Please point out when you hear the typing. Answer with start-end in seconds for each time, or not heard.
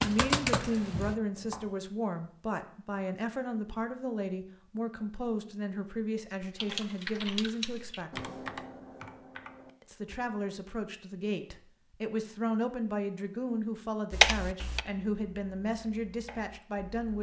0.0-1.7, 6.4-10.2, 14.1-17.1.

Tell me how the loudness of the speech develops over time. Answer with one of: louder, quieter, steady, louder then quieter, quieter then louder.
steady.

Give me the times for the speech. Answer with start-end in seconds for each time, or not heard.
0.0-8.3, 9.8-17.1.